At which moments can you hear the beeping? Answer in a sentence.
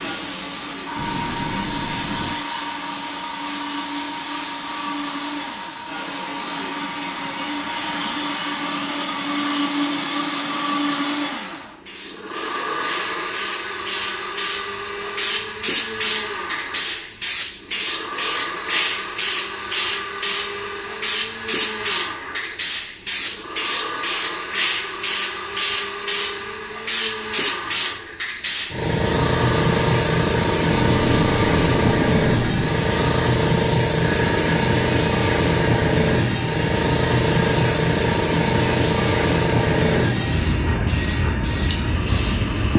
You can hear the beeping from 0.9 to 2.4 s and from 30.7 to 32.7 s.